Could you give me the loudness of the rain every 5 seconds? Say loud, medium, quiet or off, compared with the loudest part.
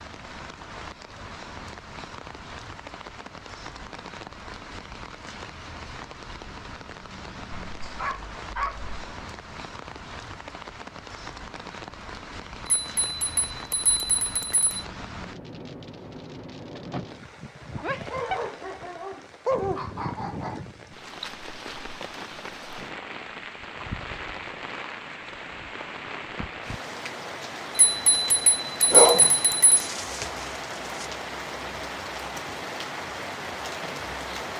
medium, medium, medium, medium, loud, loud, loud.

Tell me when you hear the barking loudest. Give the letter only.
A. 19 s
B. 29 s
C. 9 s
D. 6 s
B.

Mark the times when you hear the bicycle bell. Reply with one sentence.
The bicycle bell can be heard from 12.7 to 14.8 s and from 27.8 to 29.9 s.